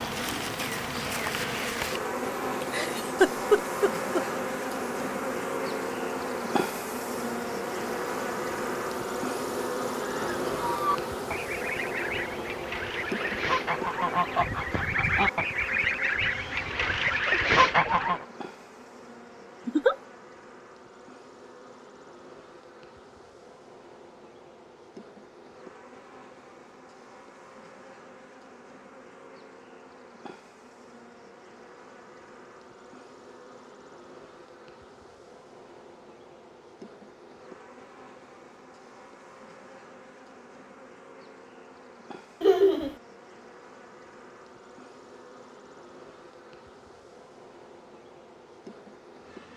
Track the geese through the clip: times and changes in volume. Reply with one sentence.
You can hear the geese from 9.9 to 18.2 s, getting louder.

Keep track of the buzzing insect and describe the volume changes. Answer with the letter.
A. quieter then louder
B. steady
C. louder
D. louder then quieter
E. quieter
E.